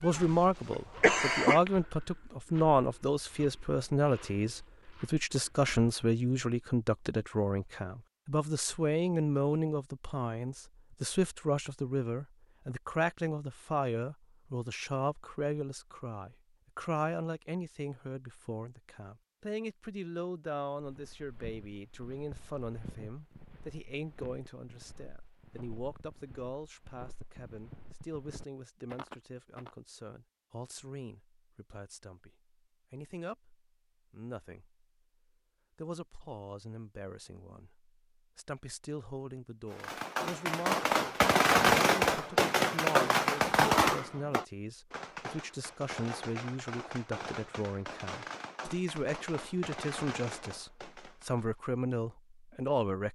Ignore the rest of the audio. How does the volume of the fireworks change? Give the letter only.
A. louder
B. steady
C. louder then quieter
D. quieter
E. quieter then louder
D.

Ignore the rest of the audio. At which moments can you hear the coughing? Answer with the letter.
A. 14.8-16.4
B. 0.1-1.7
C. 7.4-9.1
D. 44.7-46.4
B.